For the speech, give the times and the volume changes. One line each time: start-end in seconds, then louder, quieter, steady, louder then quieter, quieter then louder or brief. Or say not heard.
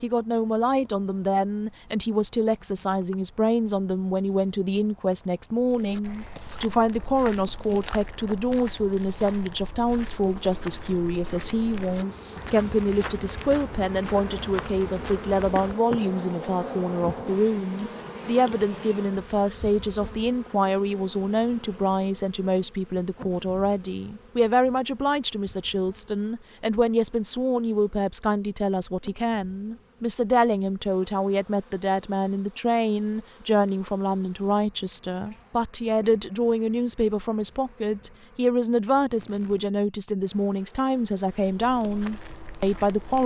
0.0-43.2 steady.